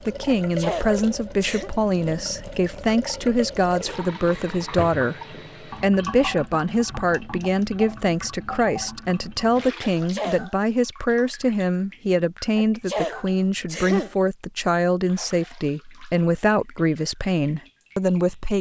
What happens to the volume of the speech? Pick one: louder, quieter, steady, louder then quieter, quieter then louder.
steady.